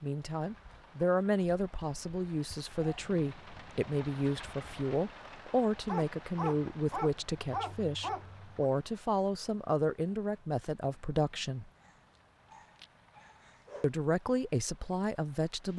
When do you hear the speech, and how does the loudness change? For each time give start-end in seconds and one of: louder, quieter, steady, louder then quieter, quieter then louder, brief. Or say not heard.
0.0-11.7 steady
13.8-15.7 brief.